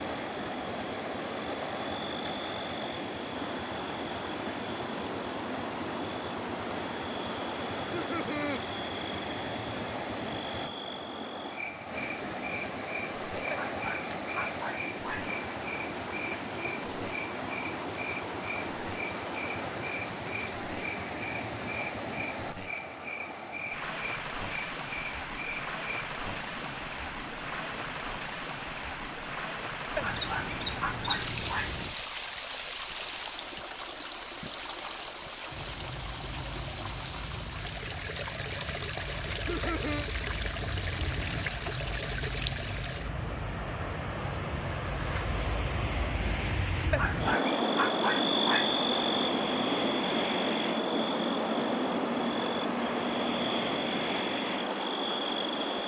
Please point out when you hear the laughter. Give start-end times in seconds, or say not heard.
7.9-8.6, 39.3-40.1.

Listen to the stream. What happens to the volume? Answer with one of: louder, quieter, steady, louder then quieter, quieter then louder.
steady.